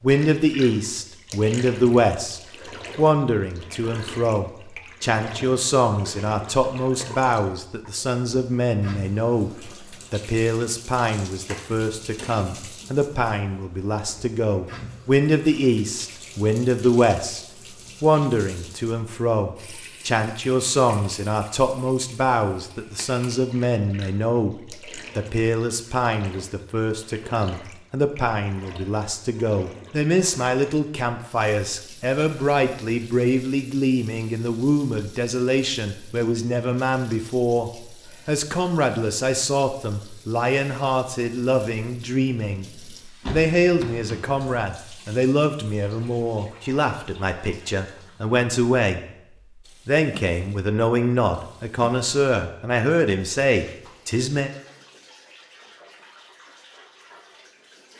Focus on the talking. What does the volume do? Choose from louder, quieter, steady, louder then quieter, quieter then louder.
steady.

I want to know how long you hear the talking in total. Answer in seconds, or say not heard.
53 s.